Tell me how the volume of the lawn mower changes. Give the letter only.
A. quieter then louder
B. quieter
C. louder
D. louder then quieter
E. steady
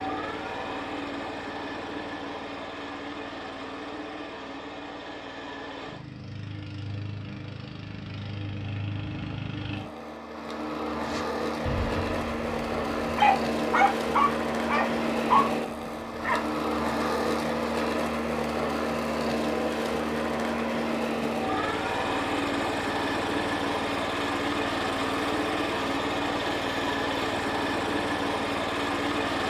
C.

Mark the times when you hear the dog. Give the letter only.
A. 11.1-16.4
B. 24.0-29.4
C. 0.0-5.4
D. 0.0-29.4
A.